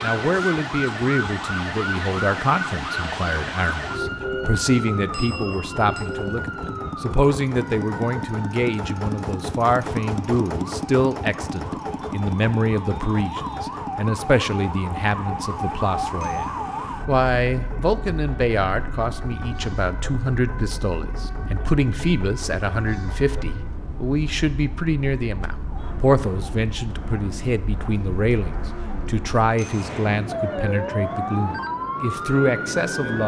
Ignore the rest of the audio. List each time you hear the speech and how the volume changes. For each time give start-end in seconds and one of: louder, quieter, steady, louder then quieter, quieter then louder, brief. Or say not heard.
0.0-33.2 steady.